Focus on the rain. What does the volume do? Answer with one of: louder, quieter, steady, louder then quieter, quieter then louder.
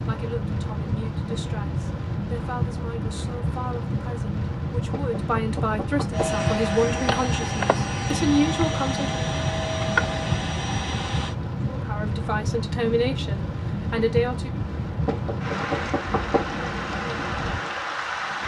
steady.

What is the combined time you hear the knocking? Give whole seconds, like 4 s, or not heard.
3 s.